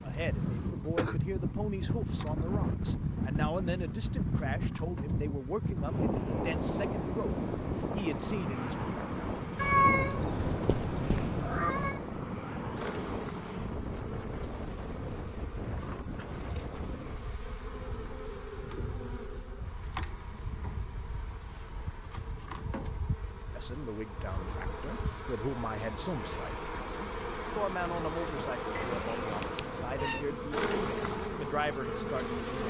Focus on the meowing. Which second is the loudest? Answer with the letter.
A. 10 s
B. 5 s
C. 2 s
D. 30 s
A.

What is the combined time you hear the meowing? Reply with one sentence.
You can hear the meowing for 4 seconds altogether.